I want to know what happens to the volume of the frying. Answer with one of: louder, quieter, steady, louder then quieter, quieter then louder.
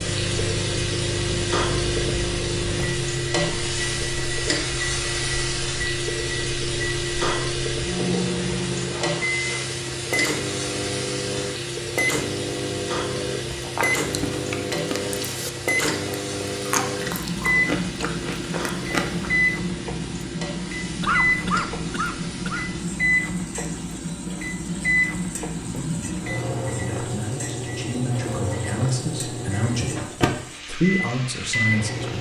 quieter.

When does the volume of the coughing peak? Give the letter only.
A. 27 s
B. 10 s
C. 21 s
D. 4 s
C.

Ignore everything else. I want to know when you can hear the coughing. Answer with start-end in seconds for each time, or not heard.
9.0-9.8, 21.0-22.8.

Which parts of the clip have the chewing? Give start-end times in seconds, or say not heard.
13.5-19.4.